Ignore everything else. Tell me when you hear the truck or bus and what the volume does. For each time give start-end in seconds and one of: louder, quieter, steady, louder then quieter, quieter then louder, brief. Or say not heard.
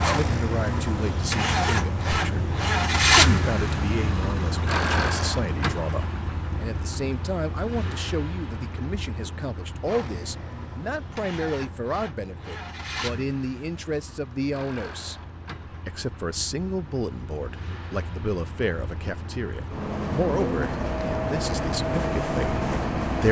0.0-23.2 quieter then louder.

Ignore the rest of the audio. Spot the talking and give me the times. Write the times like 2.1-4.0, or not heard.
0.0-15.2, 15.8-23.2.